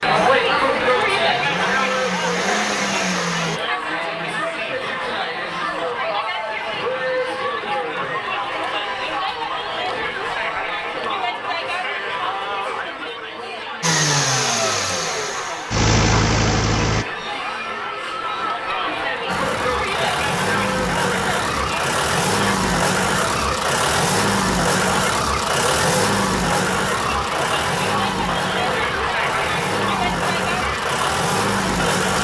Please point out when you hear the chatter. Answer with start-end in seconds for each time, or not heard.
0.0-32.1.